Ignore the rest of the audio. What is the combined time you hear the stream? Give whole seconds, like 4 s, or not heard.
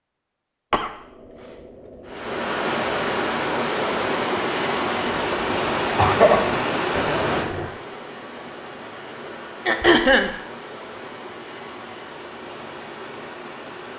12 s.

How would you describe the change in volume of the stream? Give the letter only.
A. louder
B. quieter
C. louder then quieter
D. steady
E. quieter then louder
B.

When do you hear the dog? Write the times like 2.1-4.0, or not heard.
6.9-7.8.